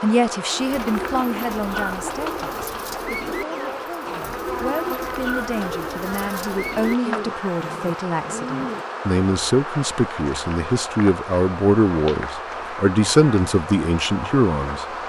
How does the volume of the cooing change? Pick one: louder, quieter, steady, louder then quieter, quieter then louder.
steady.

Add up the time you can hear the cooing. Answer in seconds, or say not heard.
8 s.